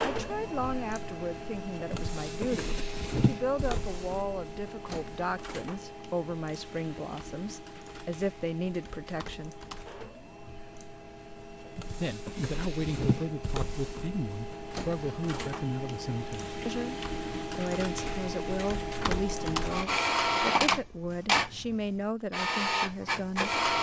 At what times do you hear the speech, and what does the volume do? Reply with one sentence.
The speech can be heard from 0.0 to 9.6 s, at a steady volume; and from 12.0 to 23.6 s, at a steady volume.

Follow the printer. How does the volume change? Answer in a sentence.
The loudness of the printer goes down, then up.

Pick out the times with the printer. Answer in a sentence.
The printer can be heard from 0.0 to 23.7 s.